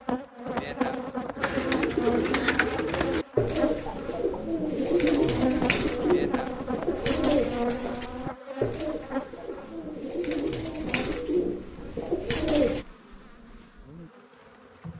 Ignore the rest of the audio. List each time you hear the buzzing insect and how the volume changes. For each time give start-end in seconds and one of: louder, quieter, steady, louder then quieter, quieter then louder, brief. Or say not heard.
0.0-14.9 quieter.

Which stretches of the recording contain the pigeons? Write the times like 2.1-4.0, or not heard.
1.4-12.8.